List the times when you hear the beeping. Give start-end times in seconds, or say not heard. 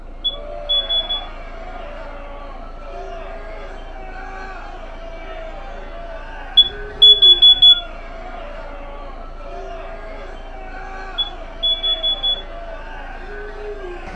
0.2-1.1, 6.5-7.8, 11.2-12.3.